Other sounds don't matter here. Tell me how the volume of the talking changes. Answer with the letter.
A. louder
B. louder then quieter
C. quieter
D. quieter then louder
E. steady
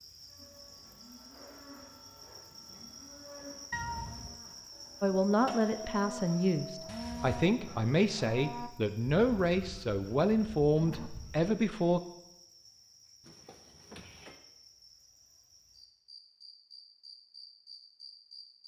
E.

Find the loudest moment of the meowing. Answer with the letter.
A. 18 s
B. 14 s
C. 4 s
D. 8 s
C.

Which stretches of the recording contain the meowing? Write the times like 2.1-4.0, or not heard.
3.7-4.4, 6.8-7.5, 13.2-14.4.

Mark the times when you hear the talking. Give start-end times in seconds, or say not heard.
5.0-12.0.